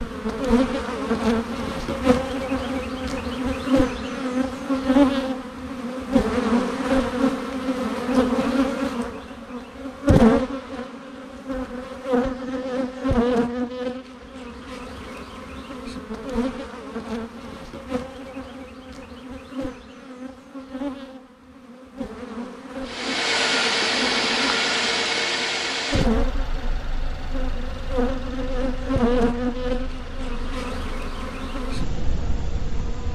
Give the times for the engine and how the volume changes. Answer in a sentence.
You can hear the engine from 22.9 to 32.8 s, getting quieter.